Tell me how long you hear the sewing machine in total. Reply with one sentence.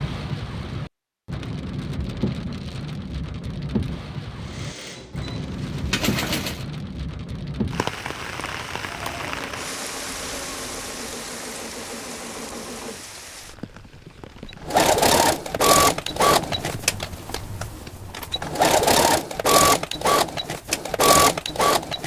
You can hear the sewing machine for 15 seconds altogether.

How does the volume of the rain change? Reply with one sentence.
The volume of the rain goes down.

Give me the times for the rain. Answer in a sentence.
You can hear the rain from 0.0 to 17.0 s.